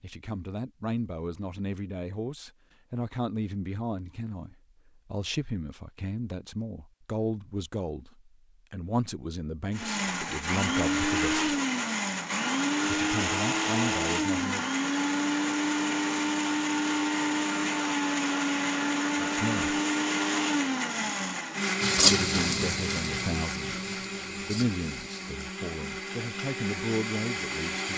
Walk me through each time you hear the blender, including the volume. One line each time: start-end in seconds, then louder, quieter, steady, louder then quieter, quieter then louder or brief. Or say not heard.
9.7-27.9 quieter.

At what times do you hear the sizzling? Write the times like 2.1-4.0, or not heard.
21.8-25.4.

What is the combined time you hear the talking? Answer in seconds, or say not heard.
20 s.